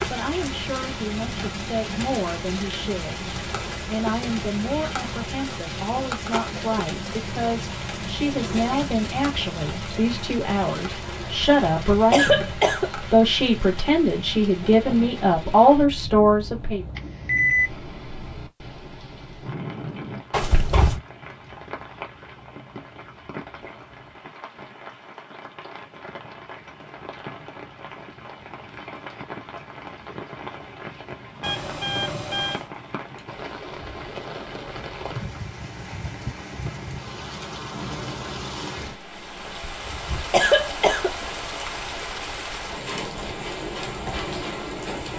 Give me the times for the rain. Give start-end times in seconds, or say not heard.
0.0-45.1.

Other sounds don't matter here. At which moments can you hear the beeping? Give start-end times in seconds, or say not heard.
16.9-17.7, 31.4-32.6.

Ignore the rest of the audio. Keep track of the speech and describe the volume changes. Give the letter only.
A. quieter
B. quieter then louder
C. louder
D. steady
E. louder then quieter
C.